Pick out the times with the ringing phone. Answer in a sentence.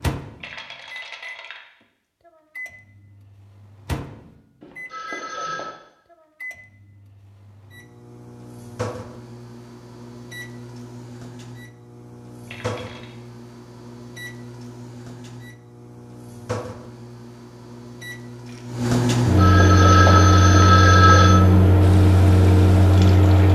You can hear the ringing phone from 4.6 to 5.8 s and from 19.2 to 21.5 s.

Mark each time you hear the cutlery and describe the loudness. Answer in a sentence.
You can't hear the cutlery here.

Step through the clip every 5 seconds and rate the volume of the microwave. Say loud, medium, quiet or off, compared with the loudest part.
quiet, quiet, quiet, medium, loud.